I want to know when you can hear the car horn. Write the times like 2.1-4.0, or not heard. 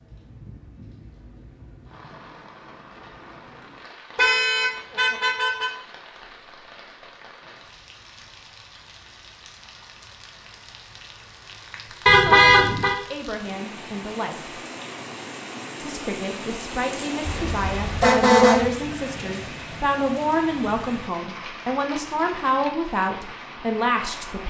4.2-5.7, 12.1-12.9, 17.2-18.7.